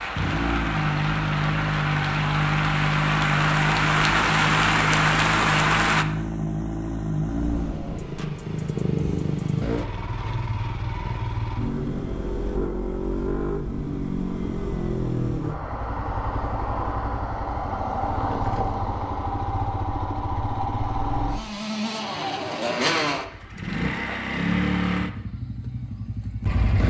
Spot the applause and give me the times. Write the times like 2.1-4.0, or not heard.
0.0-6.0.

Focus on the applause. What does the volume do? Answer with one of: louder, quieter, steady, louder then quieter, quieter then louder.
louder.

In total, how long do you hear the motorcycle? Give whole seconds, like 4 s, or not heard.
27 s.